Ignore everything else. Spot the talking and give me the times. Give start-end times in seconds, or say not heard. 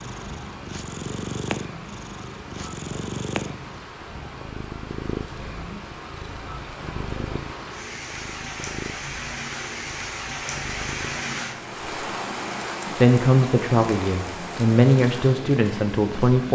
12.9-16.4.